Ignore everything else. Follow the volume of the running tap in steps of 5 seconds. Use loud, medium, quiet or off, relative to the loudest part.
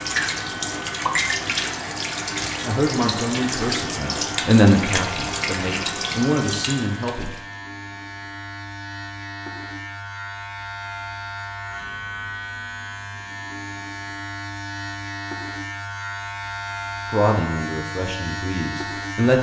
loud, loud, off, off.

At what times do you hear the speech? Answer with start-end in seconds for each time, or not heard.
2.6-7.3, 17.1-19.3.